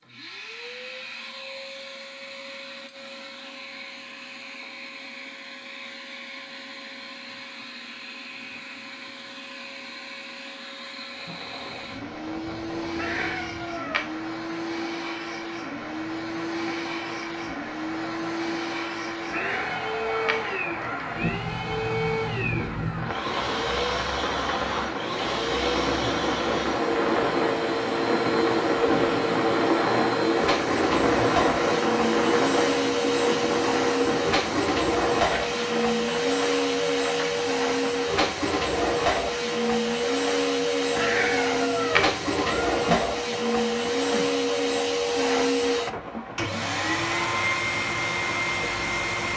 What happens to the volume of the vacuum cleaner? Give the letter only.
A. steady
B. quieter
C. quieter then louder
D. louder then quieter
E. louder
E.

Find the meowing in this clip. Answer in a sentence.
You can hear the meowing from 12.9 to 14.1 s, from 19.2 to 21.4 s and from 41.0 to 43.0 s.